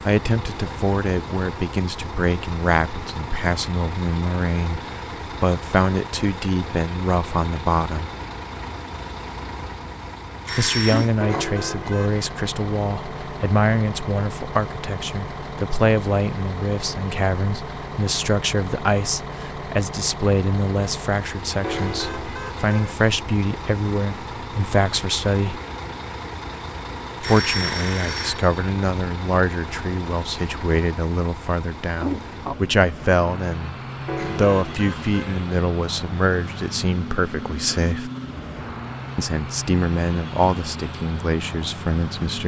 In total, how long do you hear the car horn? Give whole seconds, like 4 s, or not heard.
4 s.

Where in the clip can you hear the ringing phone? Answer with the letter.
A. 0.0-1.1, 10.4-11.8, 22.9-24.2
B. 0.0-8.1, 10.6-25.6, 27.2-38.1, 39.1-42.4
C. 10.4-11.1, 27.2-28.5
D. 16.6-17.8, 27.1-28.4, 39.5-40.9
C.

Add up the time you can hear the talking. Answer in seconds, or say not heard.
37 s.